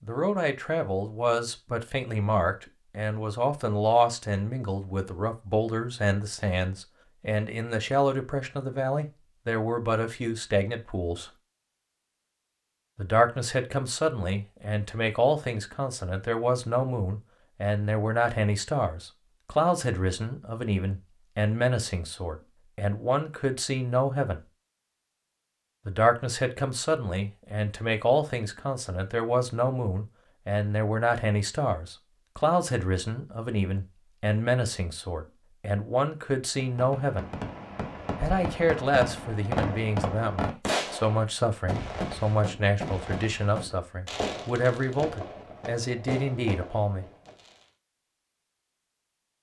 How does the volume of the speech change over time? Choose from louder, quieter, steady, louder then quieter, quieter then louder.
steady.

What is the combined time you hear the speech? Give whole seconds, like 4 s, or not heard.
43 s.